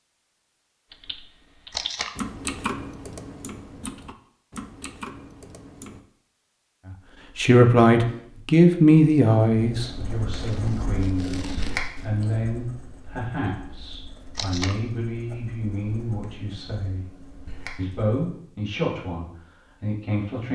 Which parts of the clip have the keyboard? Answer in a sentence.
You can hear the keyboard from 0.9 to 6.0 s.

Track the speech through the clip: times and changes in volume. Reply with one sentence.
The speech can be heard from 7.3 to 17.1 s, getting quieter; and briefly from 17.8 to 20.5 s.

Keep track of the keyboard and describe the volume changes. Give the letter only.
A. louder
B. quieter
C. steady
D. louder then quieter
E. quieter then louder
D.